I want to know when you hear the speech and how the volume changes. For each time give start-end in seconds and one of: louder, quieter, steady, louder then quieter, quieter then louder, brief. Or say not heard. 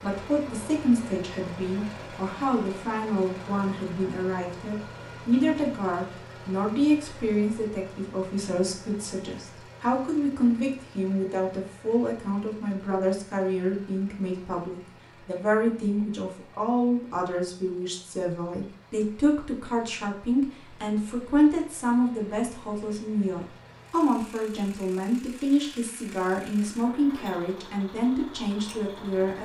0.0-29.4 steady.